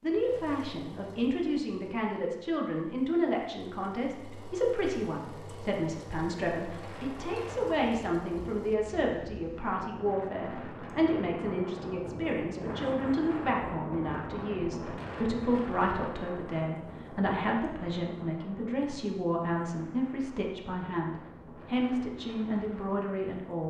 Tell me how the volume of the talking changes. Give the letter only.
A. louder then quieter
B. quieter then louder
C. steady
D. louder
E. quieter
C.